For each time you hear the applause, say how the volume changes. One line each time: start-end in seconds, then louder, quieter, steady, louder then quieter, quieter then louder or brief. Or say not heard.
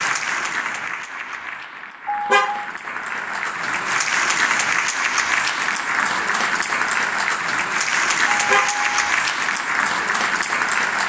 0.0-11.0 louder.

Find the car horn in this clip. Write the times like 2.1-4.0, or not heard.
2.0-2.7, 8.2-9.1.